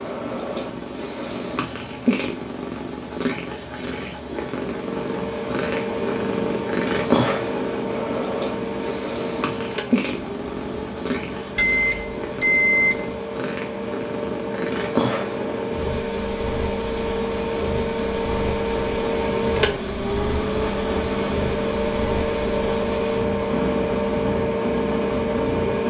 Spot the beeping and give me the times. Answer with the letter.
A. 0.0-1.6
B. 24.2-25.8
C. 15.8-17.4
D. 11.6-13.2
D.